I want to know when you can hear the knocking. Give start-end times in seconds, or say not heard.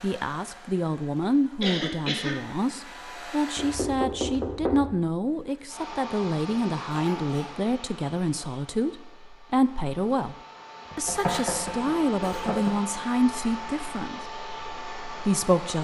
3.5-5.0, 10.9-12.8.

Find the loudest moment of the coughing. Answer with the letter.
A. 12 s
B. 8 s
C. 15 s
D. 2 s
D.